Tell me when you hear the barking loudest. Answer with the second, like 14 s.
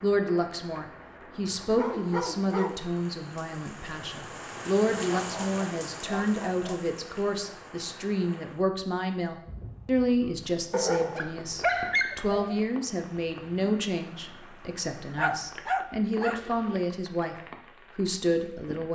12 s.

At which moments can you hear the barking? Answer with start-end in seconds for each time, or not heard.
1.8-2.9, 5.2-6.8, 10.7-12.7, 15.2-16.8.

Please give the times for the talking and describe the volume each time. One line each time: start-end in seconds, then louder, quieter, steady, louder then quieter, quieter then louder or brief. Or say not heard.
0.0-17.4 steady
17.9-18.9 brief.